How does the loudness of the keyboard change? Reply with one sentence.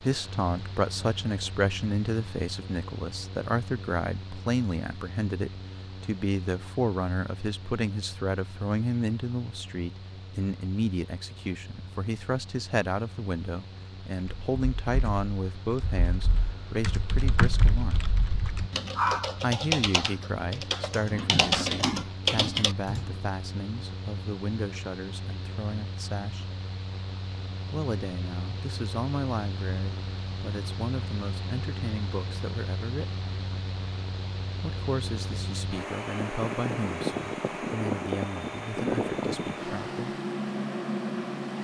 The loudness of the keyboard goes up.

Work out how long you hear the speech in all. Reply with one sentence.
You can hear the speech for 36 seconds altogether.